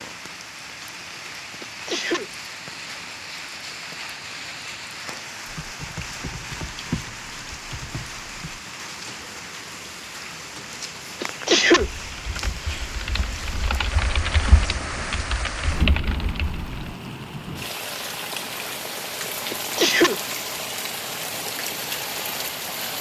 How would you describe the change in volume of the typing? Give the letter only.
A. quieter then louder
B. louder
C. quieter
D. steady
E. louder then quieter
A.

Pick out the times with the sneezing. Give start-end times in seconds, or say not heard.
1.6-2.2, 11.2-11.8, 19.5-20.1.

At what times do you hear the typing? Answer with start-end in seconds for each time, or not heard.
5.5-16.9.